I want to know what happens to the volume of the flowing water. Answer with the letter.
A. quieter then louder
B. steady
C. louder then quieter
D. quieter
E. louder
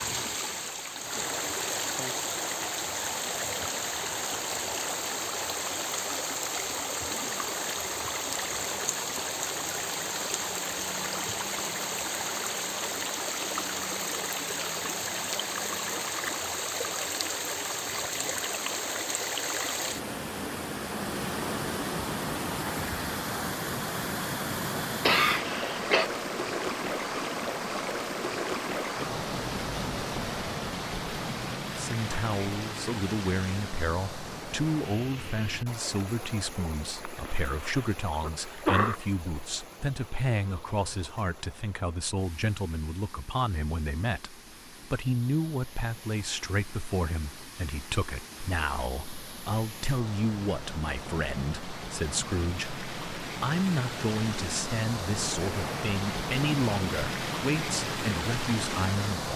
A.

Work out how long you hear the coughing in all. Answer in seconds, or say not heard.
3 s.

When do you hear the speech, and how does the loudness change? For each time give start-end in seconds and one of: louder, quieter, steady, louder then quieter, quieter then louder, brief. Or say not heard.
31.8-59.3 steady.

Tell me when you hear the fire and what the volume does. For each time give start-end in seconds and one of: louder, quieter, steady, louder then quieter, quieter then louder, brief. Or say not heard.
not heard.